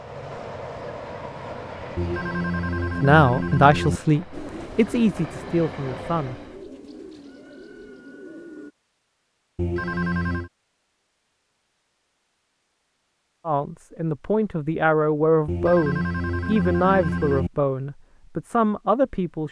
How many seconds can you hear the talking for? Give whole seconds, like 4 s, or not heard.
9 s.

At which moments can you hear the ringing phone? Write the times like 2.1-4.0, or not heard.
1.9-4.0, 9.6-10.5, 15.4-17.5.